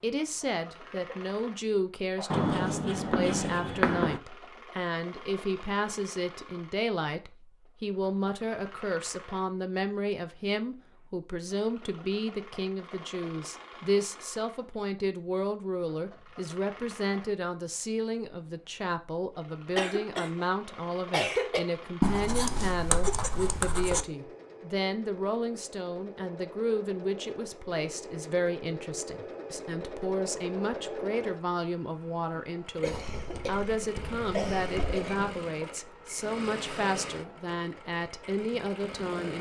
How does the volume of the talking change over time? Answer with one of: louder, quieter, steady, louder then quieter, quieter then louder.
steady.